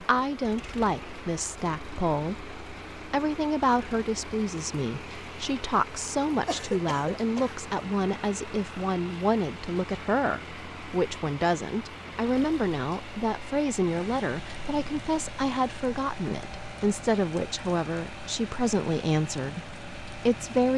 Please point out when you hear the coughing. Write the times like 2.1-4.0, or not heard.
6.5-7.5.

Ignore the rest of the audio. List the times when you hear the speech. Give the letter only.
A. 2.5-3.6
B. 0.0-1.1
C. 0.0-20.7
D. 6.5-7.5
C.